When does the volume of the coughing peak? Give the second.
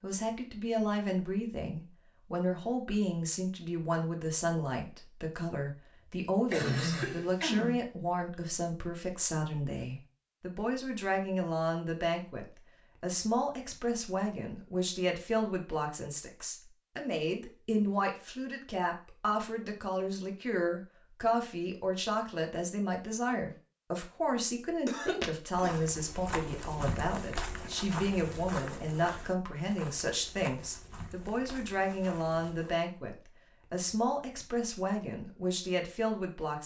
7 s.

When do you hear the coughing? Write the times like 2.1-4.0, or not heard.
6.5-7.8, 24.9-25.9.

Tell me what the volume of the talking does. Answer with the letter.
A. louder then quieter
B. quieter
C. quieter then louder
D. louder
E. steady
E.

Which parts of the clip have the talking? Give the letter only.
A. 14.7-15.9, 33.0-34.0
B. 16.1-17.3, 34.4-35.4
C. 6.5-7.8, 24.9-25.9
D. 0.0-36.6
D.